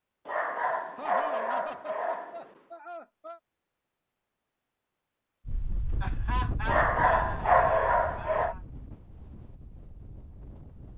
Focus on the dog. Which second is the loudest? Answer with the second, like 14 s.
8 s.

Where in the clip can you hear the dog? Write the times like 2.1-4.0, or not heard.
0.2-2.5, 6.7-8.6.